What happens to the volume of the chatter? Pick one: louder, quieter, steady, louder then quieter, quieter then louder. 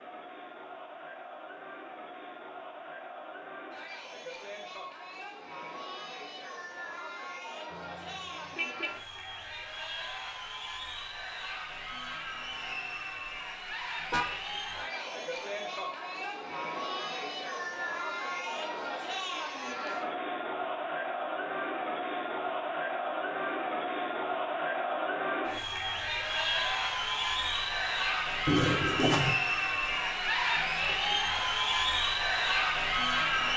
louder.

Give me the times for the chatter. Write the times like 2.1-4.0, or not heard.
0.0-33.5.